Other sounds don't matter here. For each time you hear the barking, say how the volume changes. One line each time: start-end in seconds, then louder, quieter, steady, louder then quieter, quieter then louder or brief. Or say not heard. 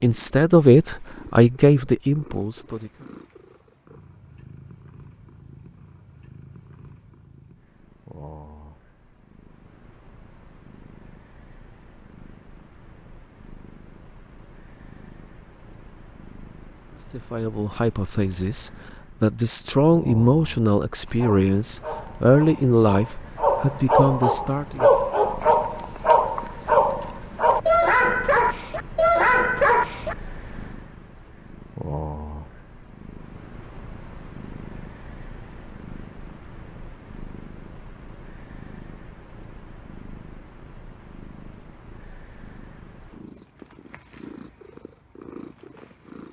21.1-30.1 louder.